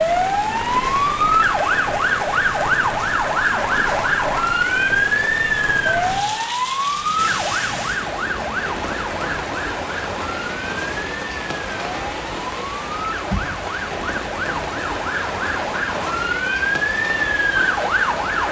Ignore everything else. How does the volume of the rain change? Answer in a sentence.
The loudness of the rain stays about the same.